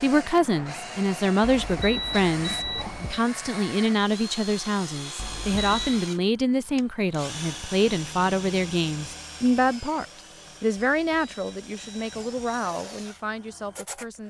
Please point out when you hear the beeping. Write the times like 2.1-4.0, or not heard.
1.4-3.2, 5.2-6.0, 10.9-12.6.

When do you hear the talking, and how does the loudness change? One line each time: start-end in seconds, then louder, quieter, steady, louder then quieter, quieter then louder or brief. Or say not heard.
0.0-14.2 quieter.